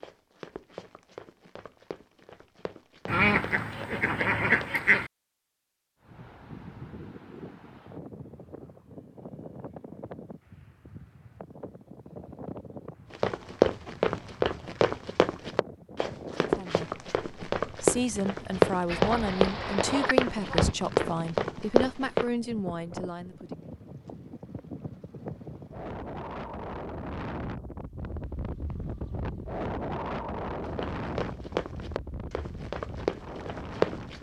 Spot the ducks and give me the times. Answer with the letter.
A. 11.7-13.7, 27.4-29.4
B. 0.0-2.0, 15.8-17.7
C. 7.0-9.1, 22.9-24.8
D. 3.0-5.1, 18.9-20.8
D.